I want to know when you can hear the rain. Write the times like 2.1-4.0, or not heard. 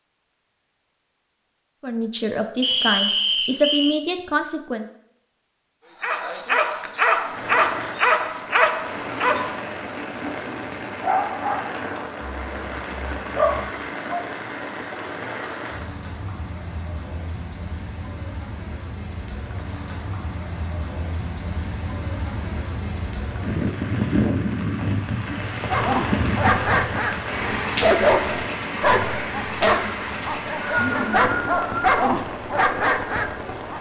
7.2-33.7.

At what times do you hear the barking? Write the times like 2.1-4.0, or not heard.
6.0-14.2, 25.7-33.7.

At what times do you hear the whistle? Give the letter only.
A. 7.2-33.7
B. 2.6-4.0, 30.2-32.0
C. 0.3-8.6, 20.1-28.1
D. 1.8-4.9
B.